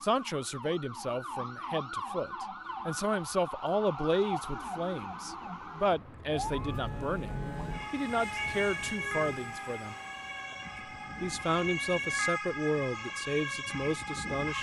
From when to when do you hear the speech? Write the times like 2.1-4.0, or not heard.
0.0-9.9, 11.2-14.5.